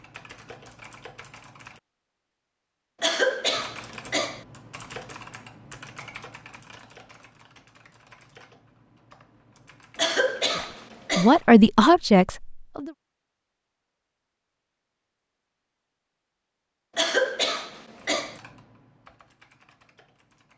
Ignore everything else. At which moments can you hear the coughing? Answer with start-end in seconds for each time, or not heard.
3.0-4.5, 9.9-11.4, 16.9-18.4.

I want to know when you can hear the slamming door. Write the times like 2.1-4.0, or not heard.
not heard.